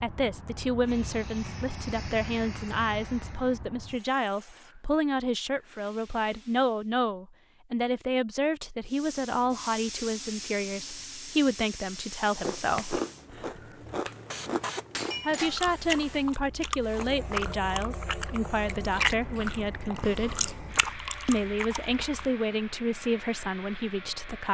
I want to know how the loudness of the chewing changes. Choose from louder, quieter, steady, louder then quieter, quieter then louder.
steady.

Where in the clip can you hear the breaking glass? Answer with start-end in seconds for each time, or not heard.
14.9-15.6.